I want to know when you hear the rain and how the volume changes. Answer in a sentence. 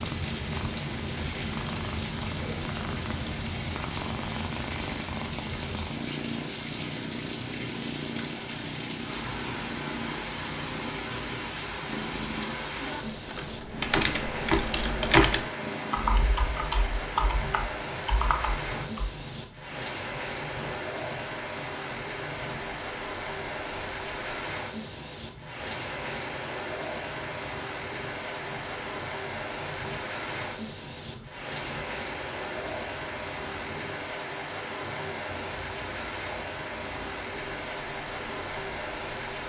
You can hear the rain from 0.0 to 39.4 s, at a steady volume.